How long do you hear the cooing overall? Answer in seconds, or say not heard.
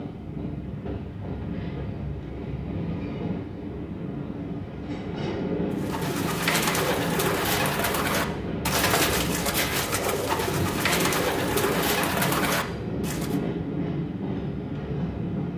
8 s.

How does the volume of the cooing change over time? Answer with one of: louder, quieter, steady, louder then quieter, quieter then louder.
steady.